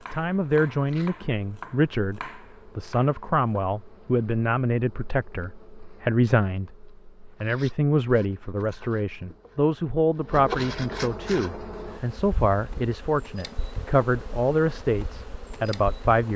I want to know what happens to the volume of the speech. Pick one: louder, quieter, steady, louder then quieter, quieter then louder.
steady.